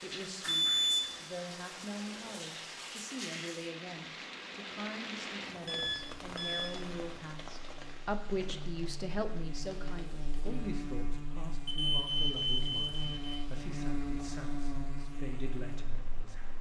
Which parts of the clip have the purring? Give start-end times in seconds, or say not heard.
not heard.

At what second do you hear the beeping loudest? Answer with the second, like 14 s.
1 s.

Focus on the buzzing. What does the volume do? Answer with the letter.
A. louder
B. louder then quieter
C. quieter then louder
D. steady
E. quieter
A.